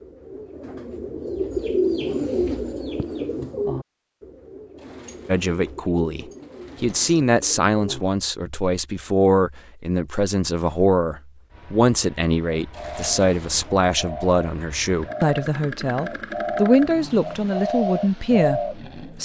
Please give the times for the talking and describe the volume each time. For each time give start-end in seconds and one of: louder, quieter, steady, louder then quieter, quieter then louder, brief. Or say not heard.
5.2-19.2 steady.